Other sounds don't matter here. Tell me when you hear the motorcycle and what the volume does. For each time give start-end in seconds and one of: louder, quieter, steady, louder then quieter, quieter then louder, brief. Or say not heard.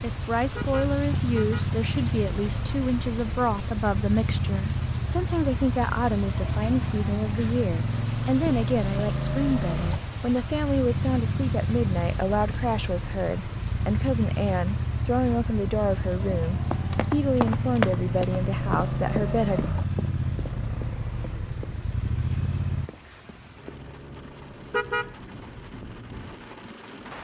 0.0-22.9 steady.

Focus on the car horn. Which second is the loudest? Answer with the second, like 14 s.
25 s.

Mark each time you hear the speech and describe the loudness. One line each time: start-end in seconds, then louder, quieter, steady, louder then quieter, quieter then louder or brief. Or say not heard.
0.0-19.6 steady.